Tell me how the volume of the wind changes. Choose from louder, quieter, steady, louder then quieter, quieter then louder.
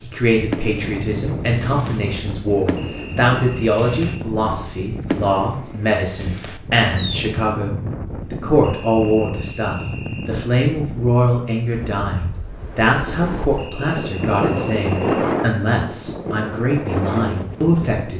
louder.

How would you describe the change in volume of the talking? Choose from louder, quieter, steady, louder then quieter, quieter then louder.
steady.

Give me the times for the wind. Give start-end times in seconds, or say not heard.
0.0-18.1.